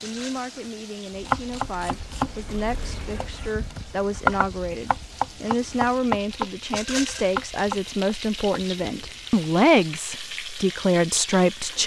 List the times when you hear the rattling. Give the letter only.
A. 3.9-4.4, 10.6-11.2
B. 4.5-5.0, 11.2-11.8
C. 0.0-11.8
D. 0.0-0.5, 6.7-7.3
D.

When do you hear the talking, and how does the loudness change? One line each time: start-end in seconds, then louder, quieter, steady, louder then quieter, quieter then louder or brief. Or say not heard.
0.0-11.8 louder.